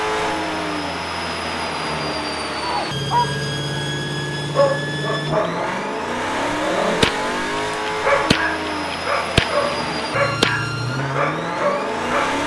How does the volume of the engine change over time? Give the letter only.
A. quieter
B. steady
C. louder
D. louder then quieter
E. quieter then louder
B.